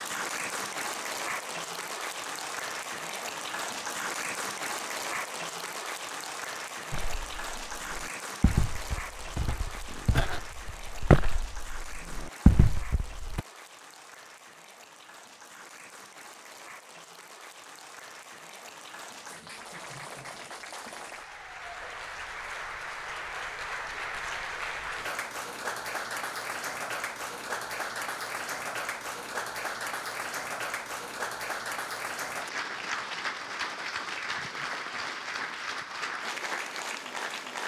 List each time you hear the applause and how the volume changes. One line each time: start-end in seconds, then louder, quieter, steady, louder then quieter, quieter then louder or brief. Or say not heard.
0.0-37.6 quieter then louder.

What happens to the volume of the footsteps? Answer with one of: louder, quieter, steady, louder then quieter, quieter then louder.
louder.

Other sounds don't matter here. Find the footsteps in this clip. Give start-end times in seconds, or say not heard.
6.9-13.4.